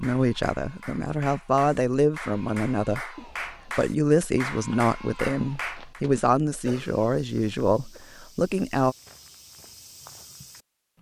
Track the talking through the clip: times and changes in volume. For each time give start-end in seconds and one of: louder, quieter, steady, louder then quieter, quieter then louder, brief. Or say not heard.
0.0-8.9 steady.